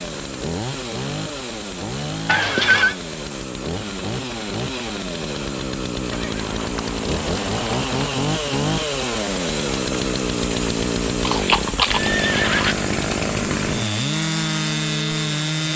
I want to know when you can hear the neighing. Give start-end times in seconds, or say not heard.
2.2-3.0, 6.1-8.2, 11.2-12.8.